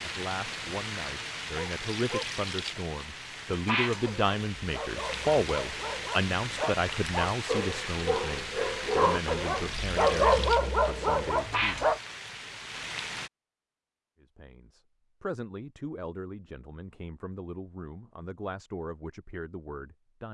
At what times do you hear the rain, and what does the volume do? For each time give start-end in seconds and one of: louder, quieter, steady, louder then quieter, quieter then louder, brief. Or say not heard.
0.0-13.3 steady.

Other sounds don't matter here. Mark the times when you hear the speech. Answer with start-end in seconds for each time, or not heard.
0.0-11.9, 14.2-20.2.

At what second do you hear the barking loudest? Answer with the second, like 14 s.
10 s.